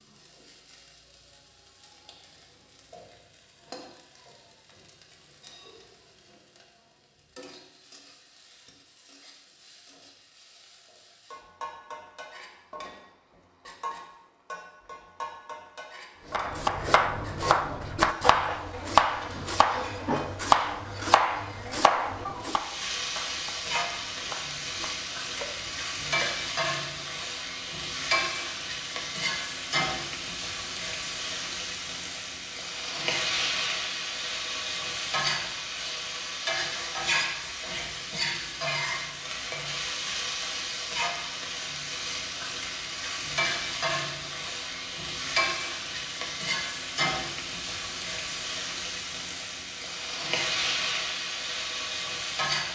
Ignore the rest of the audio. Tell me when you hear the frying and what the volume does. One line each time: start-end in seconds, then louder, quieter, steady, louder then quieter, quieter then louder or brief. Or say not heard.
0.0-52.7 louder.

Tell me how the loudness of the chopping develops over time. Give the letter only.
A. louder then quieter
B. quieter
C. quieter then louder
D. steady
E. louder
B.